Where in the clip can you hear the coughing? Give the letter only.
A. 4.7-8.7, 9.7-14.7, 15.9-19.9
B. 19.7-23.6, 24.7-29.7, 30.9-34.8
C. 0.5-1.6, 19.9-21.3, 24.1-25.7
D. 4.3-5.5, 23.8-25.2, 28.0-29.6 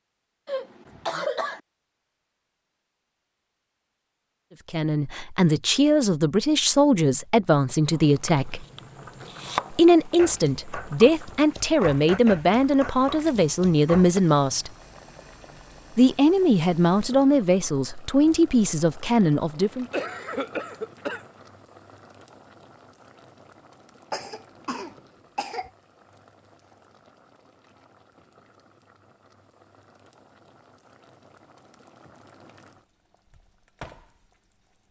C.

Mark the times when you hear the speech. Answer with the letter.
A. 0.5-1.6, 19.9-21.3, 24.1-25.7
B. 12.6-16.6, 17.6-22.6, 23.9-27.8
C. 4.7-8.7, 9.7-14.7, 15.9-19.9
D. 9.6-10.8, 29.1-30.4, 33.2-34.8
C.